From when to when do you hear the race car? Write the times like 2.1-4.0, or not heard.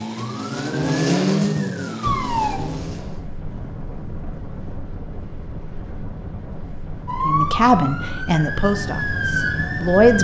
0.0-3.2.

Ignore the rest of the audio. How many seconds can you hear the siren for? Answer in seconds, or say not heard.
6 s.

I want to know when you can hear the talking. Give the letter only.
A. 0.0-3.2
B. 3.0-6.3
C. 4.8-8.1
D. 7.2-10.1
D.